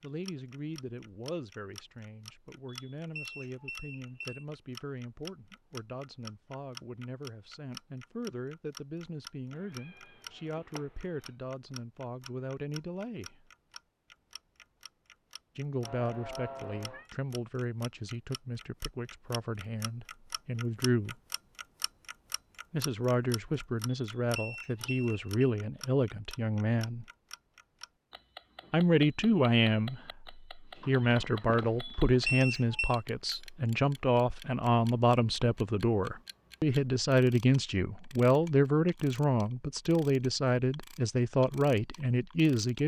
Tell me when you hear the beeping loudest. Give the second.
32 s.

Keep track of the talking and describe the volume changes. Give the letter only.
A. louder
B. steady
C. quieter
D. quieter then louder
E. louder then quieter
A.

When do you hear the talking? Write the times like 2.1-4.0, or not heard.
0.0-13.3, 15.6-21.1, 22.7-27.1, 28.7-42.8.